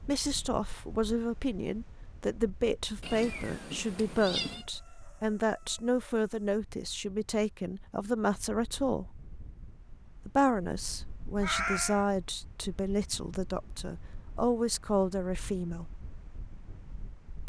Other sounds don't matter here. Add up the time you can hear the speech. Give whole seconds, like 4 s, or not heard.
15 s.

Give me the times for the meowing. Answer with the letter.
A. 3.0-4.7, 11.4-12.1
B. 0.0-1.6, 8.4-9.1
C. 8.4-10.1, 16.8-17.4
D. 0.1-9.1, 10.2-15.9
A.